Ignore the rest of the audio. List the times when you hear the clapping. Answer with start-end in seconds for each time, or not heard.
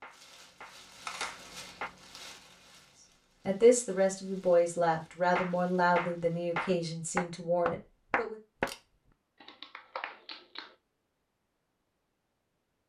0.0-1.9, 5.3-8.7, 9.4-10.8.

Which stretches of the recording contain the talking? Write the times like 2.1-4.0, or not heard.
3.5-8.3.